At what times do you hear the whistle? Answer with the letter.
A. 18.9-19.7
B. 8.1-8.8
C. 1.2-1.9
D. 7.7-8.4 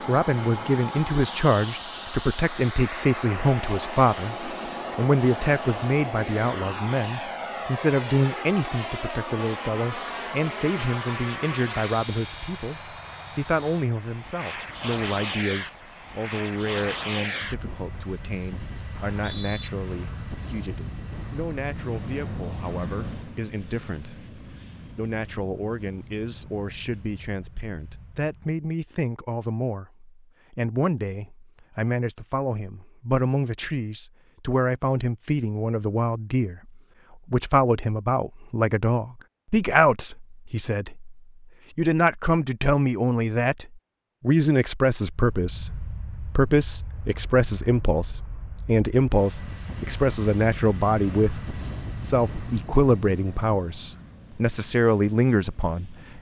A.